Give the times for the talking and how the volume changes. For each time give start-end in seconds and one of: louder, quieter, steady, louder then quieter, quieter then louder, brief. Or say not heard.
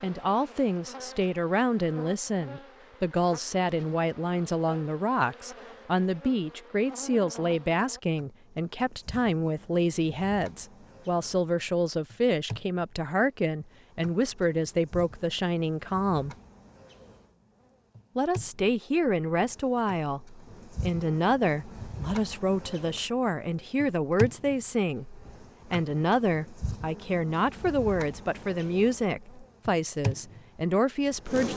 0.0-16.4 steady
18.1-31.5 steady.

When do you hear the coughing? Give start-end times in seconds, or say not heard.
not heard.